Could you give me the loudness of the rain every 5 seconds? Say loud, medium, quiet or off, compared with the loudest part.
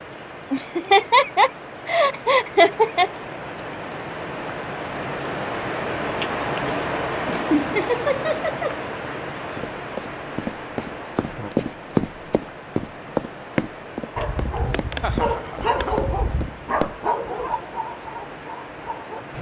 medium, loud, medium, medium.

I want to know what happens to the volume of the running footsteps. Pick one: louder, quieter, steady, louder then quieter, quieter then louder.
louder then quieter.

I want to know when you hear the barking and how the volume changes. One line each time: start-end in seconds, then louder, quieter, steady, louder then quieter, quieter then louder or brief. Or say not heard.
14.2-19.2 quieter.